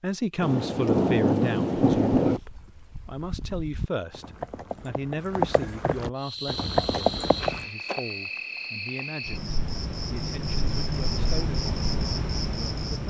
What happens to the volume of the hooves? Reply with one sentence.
The loudness of the hooves goes up.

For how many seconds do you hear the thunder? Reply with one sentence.
You can hear the thunder for 2 seconds altogether.